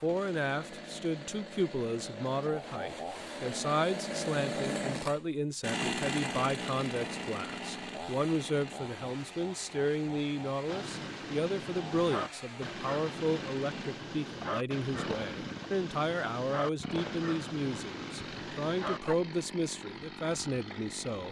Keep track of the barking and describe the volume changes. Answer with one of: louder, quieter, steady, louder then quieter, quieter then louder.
steady.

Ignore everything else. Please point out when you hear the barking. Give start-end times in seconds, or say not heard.
10.7-19.1.